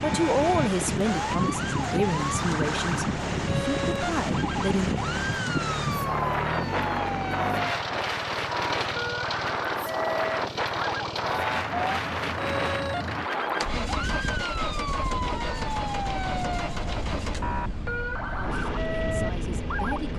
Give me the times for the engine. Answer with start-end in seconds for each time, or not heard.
0.0-20.1.